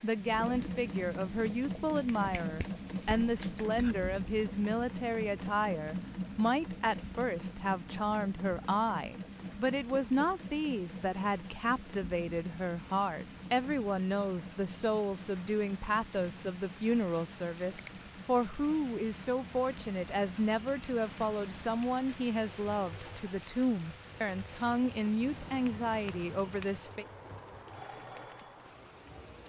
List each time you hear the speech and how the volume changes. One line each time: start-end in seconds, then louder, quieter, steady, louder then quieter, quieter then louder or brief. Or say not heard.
0.0-27.1 steady.